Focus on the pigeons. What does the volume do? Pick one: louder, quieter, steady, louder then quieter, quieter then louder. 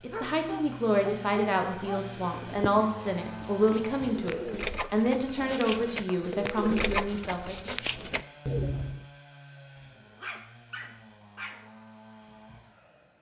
louder.